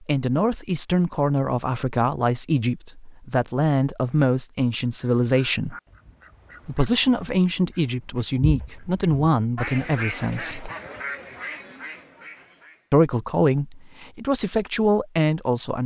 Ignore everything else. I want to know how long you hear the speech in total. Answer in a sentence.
You can hear the speech for 13 seconds altogether.